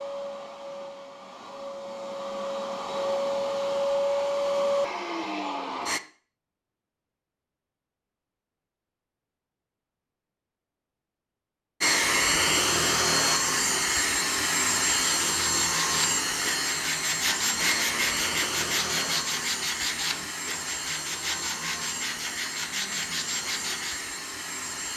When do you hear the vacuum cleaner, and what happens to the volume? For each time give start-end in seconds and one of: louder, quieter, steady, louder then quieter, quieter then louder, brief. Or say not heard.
0.0-6.0 louder
11.8-24.9 quieter.